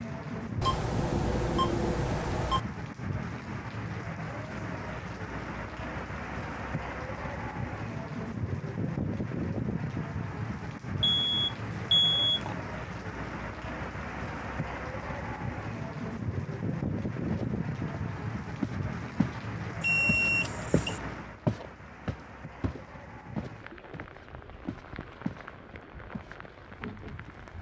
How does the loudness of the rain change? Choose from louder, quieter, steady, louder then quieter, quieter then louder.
quieter.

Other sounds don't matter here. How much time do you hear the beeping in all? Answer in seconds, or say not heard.
5 s.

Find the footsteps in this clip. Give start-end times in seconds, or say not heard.
17.3-19.4, 20.1-25.4, 26.1-27.4.